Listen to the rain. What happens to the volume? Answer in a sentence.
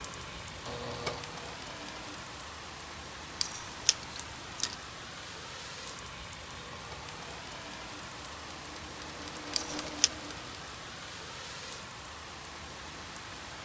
The volume of the rain stays about the same.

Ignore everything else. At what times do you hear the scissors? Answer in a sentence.
You can hear the scissors from 3.4 to 4.8 s and from 9.6 to 10.1 s.